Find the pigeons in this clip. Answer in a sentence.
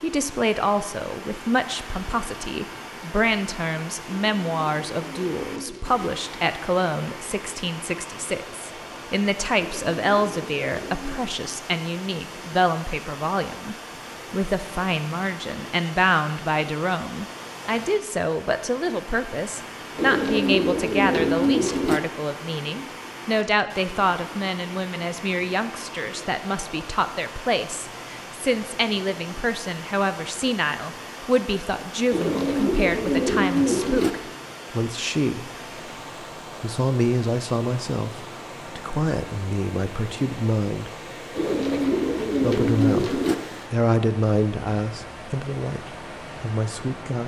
The pigeons can be heard from 4.0 to 6.1 s, from 9.6 to 11.2 s, from 19.9 to 22.0 s, from 32.1 to 34.1 s and from 41.4 to 43.4 s.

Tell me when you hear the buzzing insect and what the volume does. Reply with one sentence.
You can't hear the buzzing insect here.